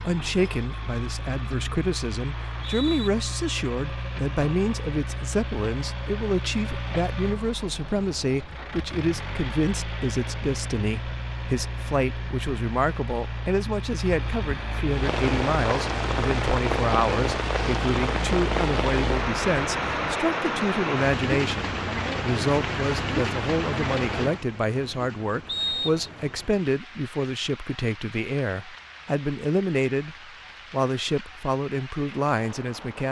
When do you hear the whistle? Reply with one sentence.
The whistle can be heard from 2.4 to 3.1 s and from 25.4 to 26.1 s.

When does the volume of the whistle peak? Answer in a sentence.
The volume of the whistle peaks at 26 seconds.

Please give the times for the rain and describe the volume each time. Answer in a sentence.
The rain can be heard from 14.8 to 33.0 s, getting quieter.